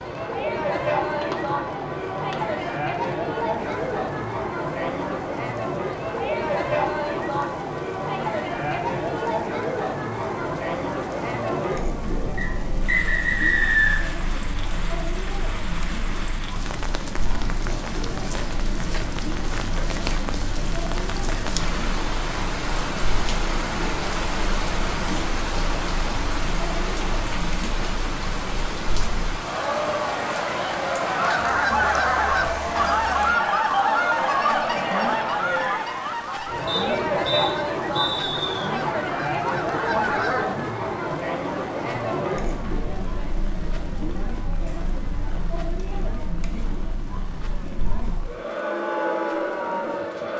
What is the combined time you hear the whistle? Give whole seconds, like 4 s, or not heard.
4 s.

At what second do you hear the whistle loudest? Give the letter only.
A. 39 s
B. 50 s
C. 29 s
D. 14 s
D.